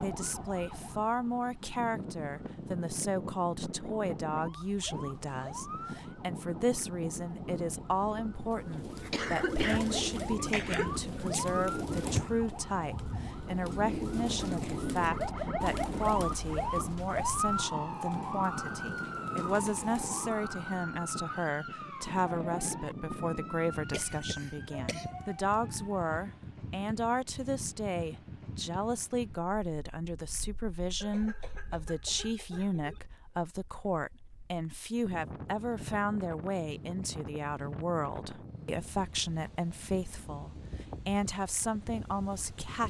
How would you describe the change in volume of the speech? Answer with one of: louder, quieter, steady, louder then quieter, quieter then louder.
steady.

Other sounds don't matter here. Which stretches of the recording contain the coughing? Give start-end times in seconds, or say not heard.
9.1-11.0, 23.9-25.1, 31.0-33.0.